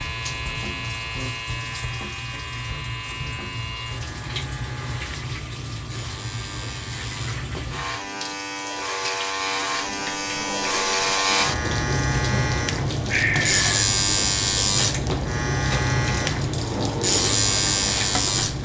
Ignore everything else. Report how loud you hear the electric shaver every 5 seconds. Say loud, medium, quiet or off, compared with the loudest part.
medium, medium, loud, loud.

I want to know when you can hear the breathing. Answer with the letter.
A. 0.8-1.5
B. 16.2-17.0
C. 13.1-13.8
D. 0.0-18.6
C.